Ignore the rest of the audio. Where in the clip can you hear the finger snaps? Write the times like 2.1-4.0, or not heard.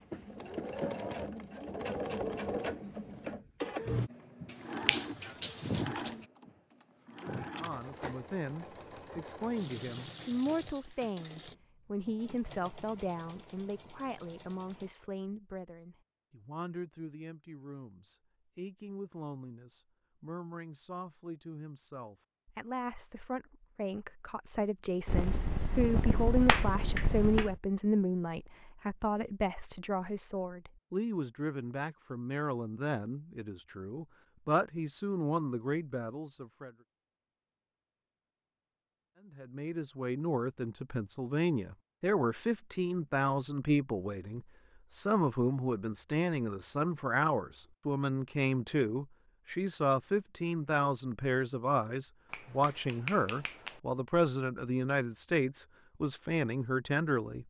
4.5-6.2, 25.1-27.6, 52.3-53.8.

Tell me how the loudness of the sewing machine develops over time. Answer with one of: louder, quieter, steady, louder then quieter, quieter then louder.
quieter.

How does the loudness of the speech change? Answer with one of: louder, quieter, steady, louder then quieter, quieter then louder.
louder.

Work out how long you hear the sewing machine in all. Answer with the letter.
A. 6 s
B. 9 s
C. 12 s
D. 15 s
D.